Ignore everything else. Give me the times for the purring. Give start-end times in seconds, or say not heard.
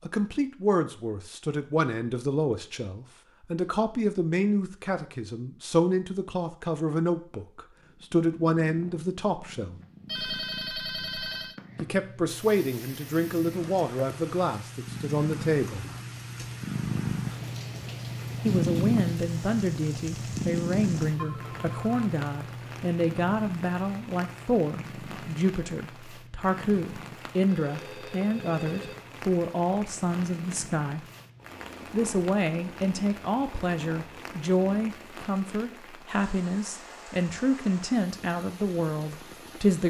7.8-35.0.